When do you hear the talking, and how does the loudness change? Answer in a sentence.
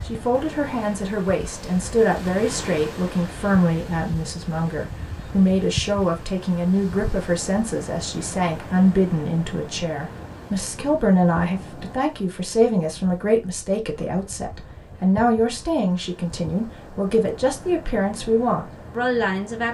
The talking can be heard from 0.1 to 19.7 s, at a steady volume.